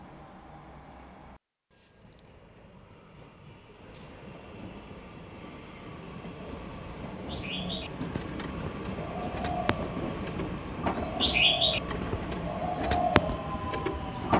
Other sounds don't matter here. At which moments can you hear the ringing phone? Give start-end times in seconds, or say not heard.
not heard.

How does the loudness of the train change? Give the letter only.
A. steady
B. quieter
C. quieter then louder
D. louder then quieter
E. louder
E.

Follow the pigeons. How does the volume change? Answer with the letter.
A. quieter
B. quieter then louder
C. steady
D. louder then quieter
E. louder
E.